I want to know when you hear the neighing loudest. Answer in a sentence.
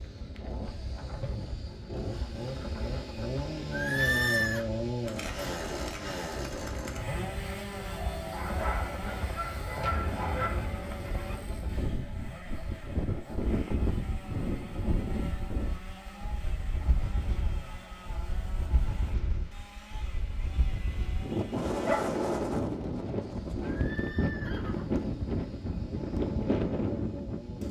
The loudest moment of the neighing is at 4 seconds.